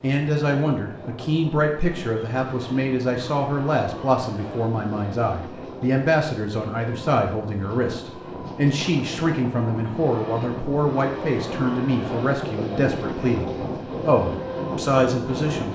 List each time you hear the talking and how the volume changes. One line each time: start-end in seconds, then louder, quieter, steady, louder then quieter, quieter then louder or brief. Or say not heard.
0.0-15.7 steady.